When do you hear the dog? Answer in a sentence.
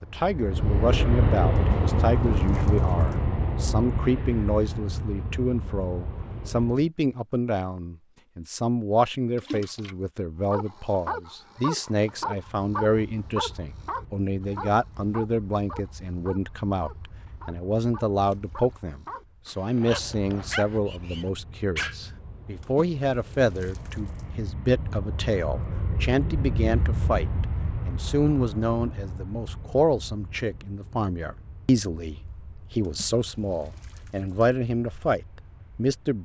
The dog can be heard from 10.5 to 21.9 s.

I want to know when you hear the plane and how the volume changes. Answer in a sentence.
You can hear the plane from 0.0 to 6.9 s, getting quieter; and from 12.3 to 36.1 s, getting louder then quieter.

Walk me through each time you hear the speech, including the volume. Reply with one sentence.
The speech can be heard from 0.0 to 36.1 s, at a steady volume.